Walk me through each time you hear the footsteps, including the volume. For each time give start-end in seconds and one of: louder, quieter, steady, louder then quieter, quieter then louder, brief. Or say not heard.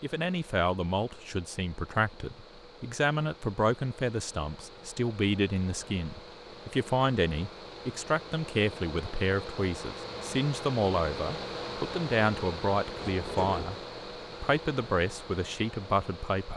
not heard.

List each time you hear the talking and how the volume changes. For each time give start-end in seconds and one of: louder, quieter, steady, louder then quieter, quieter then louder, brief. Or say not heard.
0.0-13.8 steady
14.4-16.5 brief.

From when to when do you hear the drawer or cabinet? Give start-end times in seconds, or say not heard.
12.9-13.8.